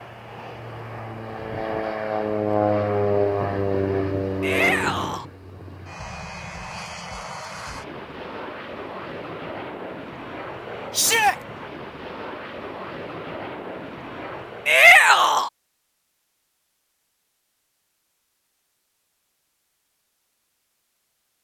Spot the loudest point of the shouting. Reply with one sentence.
The loudest moment of the shouting is at 15 seconds.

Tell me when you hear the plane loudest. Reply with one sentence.
The volume of the plane peaks at 3 seconds.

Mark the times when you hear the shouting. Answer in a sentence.
The shouting can be heard from 4.4 to 5.2 s, from 10.9 to 11.3 s and from 14.7 to 15.5 s.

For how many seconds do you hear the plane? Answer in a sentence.
You can hear the plane for 15 seconds altogether.